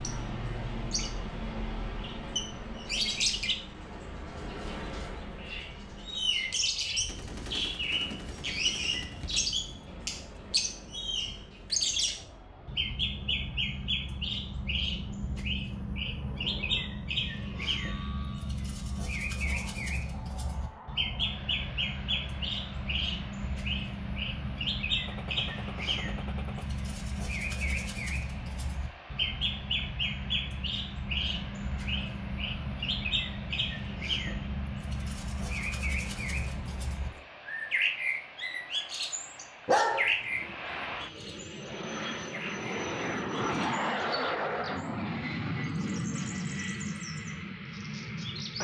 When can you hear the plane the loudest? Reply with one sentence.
The loudest moment of the plane is at 44 seconds.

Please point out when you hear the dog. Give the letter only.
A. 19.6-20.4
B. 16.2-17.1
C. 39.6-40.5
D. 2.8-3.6
C.